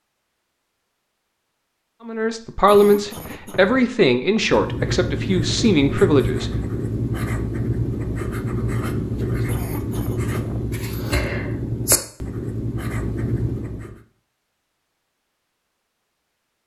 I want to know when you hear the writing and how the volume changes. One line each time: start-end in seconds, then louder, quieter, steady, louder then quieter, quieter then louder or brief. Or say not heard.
4.3-14.0 steady.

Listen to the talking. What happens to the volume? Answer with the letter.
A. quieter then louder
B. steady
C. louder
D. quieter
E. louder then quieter
A.